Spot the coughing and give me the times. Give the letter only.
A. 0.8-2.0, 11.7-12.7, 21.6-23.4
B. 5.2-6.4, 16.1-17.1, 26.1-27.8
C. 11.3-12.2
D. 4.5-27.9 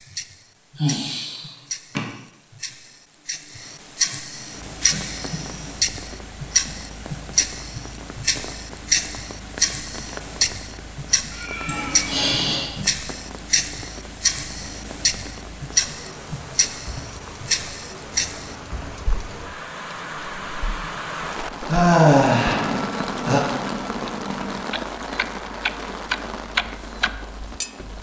C.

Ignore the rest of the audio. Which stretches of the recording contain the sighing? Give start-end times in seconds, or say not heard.
0.8-2.0, 11.7-12.7, 21.6-23.4.